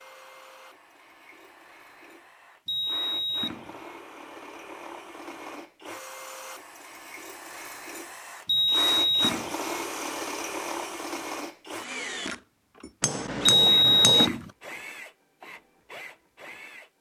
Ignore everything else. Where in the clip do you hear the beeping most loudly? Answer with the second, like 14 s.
14 s.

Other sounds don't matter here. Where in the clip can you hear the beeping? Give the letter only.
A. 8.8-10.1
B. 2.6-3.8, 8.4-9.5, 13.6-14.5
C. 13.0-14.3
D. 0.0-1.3
B.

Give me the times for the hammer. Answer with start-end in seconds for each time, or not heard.
13.0-14.3.